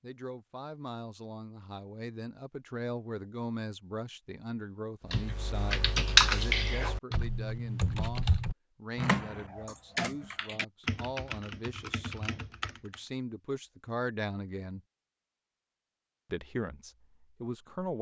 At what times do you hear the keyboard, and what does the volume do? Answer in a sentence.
The keyboard can be heard from 5.1 to 13.0 s, getting quieter.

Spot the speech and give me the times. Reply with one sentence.
You can hear the speech from 0.0 to 14.8 s and from 16.3 to 17.9 s.